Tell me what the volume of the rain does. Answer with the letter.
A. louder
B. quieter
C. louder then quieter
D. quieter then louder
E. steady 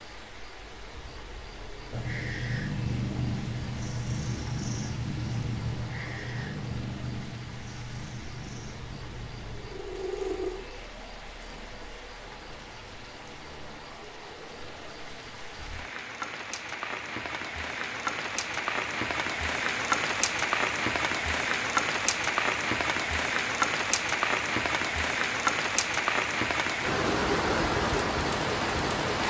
A.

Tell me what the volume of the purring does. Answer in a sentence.
The loudness of the purring goes down, then up.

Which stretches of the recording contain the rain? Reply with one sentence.
The rain can be heard from 0.0 to 29.2 s.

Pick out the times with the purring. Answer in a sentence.
You can hear the purring from 1.9 to 11.9 s.